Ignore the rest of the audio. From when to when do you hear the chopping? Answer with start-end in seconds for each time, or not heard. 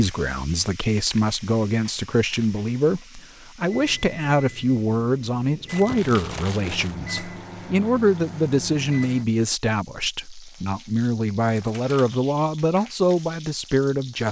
not heard.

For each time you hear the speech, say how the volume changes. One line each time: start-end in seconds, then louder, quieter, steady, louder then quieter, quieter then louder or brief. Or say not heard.
0.0-14.2 steady.